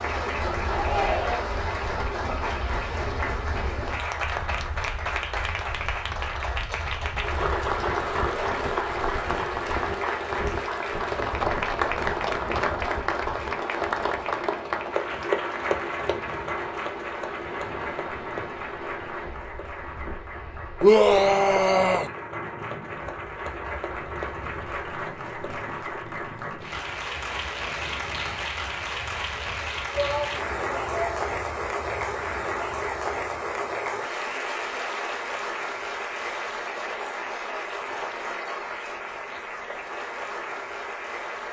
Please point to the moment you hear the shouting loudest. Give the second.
21 s.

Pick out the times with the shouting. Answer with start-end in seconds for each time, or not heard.
0.7-1.6, 20.8-22.1, 29.9-31.2.